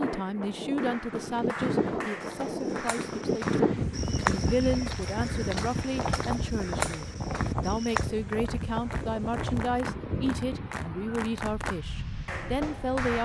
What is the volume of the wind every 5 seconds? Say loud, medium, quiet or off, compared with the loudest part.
loud, loud, medium.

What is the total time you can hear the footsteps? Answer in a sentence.
You can hear the footsteps for 6 seconds altogether.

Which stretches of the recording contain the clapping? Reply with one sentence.
The clapping can be heard from 0.0 to 3.8 s and from 8.3 to 13.2 s.